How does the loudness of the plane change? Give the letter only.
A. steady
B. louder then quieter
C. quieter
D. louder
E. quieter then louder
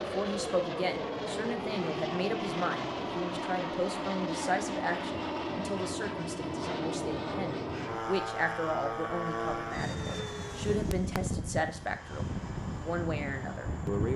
A.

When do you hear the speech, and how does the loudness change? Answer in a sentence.
The speech can be heard from 0.0 to 14.1 s, at a steady volume.